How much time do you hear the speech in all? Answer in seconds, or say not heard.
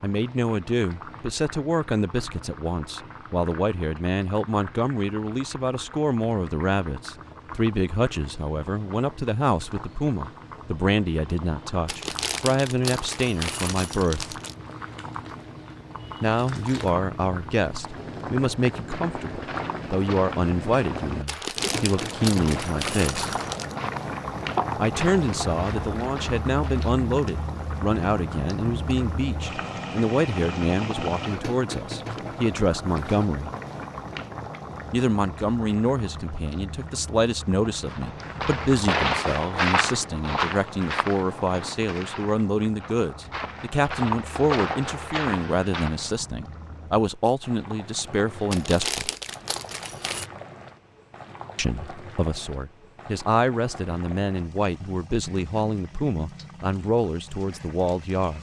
51 s.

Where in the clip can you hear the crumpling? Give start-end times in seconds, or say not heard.
11.8-14.6, 21.2-23.8, 48.5-50.3.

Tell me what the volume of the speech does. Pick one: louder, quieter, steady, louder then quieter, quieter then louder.
steady.